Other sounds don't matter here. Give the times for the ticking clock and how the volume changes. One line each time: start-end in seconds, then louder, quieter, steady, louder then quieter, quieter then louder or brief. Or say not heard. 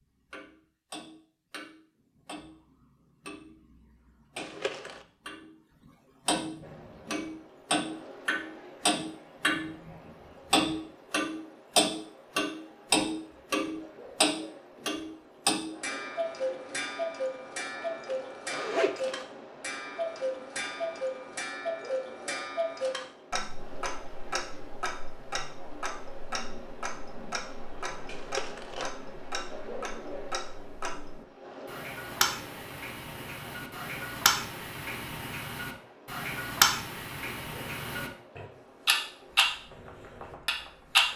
0.3-5.5 quieter then louder
6.2-41.0 quieter then louder.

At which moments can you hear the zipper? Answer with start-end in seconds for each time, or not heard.
4.3-5.0, 18.1-19.2, 28.1-28.9.